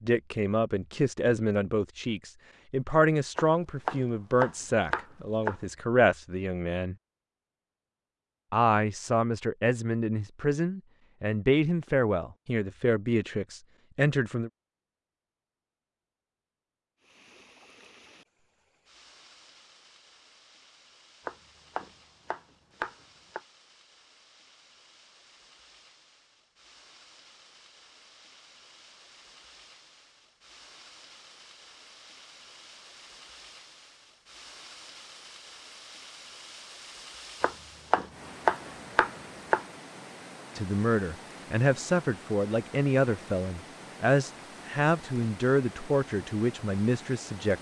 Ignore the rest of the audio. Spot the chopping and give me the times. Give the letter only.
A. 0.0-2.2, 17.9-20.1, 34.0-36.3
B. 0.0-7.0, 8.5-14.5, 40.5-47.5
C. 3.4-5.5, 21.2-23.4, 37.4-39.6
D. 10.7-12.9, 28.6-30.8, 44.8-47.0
C.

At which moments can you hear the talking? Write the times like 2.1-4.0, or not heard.
0.0-7.0, 8.5-14.5, 40.5-47.5.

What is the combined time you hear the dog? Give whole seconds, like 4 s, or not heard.
not heard.